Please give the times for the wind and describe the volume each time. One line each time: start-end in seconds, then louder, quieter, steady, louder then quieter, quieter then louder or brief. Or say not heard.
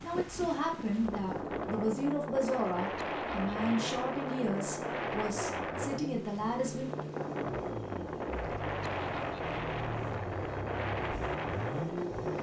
0.0-12.3 steady.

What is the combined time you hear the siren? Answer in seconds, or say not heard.
not heard.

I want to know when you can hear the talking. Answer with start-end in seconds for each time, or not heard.
0.0-6.9.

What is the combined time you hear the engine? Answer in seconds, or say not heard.
12 s.